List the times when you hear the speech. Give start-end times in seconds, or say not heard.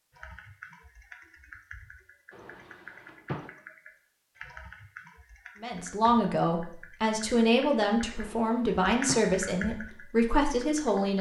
5.6-11.1.